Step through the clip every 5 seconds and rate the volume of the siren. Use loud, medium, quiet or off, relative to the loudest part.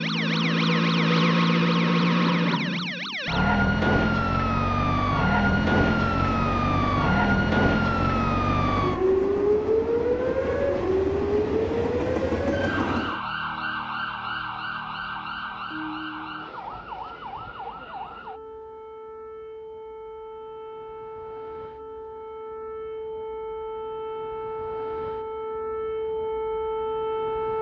loud, loud, medium, quiet, quiet, medium.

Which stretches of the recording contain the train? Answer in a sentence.
You can hear the train from 5.4 to 13.2 s.